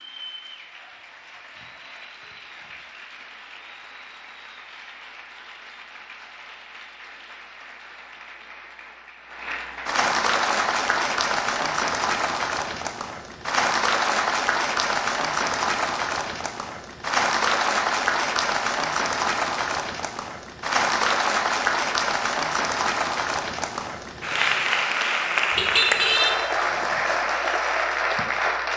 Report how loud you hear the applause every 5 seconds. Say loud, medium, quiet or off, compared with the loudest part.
quiet, quiet, loud, loud, loud, loud.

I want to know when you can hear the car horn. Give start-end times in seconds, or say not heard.
25.5-26.4.